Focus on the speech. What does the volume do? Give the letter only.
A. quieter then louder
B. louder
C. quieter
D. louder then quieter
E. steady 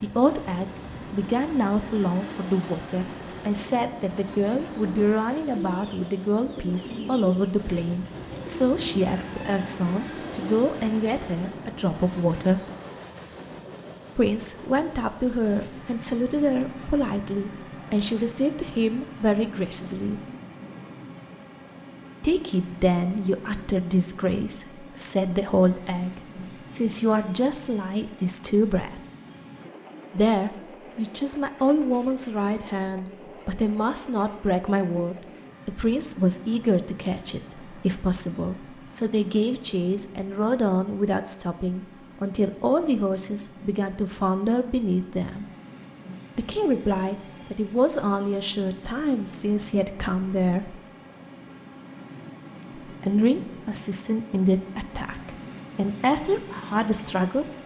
E.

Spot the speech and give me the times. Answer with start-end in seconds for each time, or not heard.
0.0-12.6, 14.2-20.2, 22.2-29.0, 30.1-45.5, 46.4-50.8, 53.0-57.5.